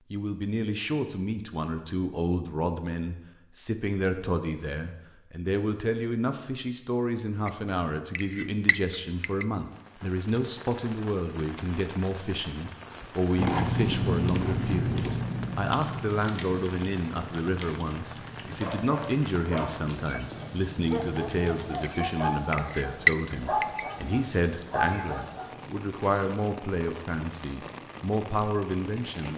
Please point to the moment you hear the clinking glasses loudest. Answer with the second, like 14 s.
23 s.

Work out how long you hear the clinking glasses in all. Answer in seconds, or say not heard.
4 s.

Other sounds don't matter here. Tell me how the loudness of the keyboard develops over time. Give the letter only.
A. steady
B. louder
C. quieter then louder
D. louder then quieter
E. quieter
E.